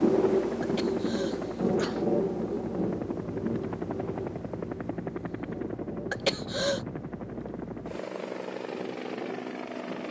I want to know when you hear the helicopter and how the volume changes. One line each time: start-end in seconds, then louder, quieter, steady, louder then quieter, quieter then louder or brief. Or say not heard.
0.2-10.0 steady.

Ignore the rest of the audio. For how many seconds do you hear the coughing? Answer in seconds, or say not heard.
3 s.